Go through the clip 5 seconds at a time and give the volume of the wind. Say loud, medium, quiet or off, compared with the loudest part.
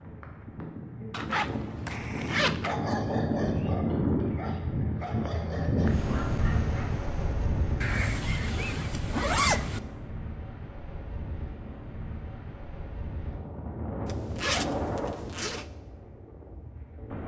loud, loud, medium, medium.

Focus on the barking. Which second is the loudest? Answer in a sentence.
The volume of the barking peaks at 3 seconds.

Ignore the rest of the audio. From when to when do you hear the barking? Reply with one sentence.
You can hear the barking from 1.2 to 7.0 s.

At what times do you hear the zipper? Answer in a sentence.
You can hear the zipper from 1.1 to 2.8 s, from 7.8 to 9.8 s and from 14.1 to 15.7 s.